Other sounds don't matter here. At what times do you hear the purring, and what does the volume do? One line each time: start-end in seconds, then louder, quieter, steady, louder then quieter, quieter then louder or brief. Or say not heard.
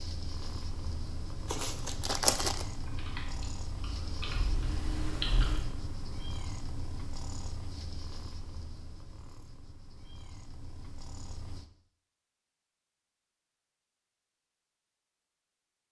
0.0-11.7 quieter.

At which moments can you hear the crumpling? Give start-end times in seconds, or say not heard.
1.4-2.6.